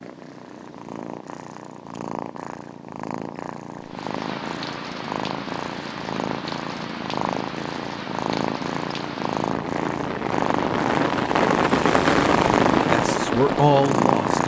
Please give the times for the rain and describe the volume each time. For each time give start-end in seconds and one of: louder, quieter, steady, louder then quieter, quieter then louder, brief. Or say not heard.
3.8-14.4 louder.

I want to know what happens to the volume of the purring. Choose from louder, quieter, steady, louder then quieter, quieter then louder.
louder.